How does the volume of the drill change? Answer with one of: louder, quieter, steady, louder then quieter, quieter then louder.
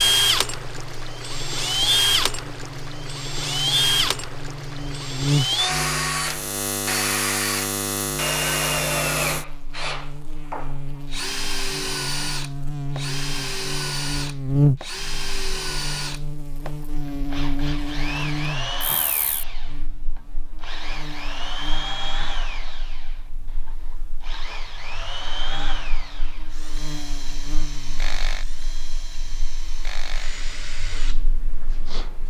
quieter.